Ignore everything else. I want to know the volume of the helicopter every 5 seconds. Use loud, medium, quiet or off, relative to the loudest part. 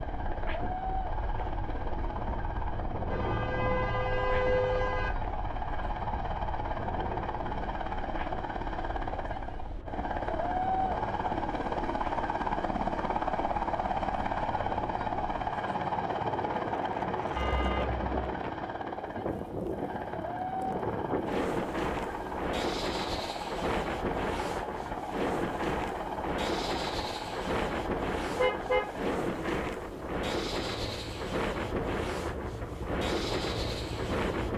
medium, medium, loud, loud, medium, medium, medium.